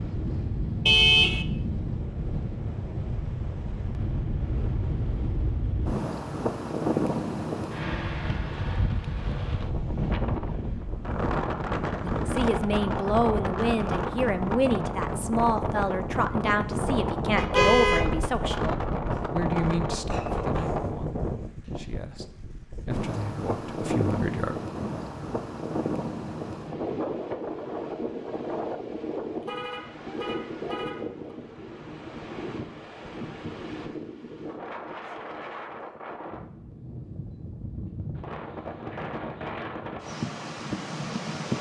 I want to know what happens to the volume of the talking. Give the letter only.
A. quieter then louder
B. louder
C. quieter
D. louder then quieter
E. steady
C.